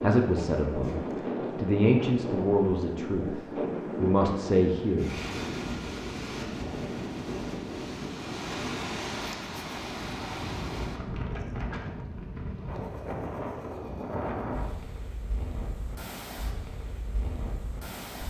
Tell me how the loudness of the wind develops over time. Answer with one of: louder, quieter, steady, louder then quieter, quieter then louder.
quieter.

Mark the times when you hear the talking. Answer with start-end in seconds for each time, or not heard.
0.0-0.9, 1.6-5.2.